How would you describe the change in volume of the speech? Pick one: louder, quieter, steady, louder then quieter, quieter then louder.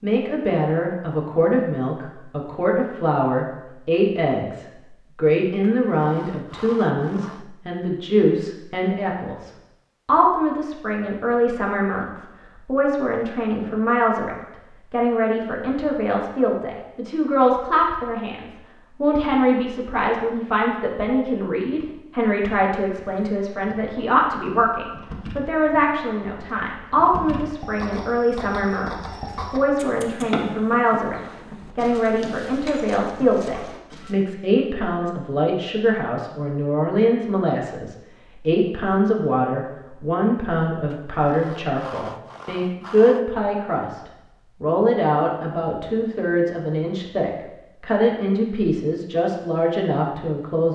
steady.